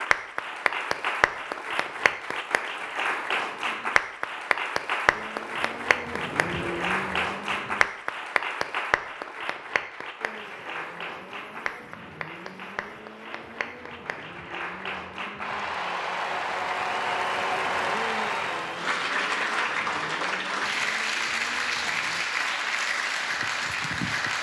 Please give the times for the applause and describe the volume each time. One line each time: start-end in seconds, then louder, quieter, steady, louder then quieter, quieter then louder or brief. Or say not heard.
0.0-24.3 quieter then louder.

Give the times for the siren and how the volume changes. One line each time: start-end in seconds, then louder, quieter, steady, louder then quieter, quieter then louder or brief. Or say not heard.
not heard.